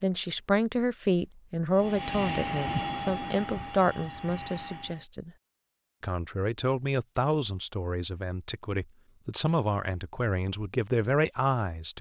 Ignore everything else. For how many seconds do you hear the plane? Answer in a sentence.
The plane can be heard for 3 seconds in total.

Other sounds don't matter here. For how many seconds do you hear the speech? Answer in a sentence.
You can hear the speech for 11 seconds altogether.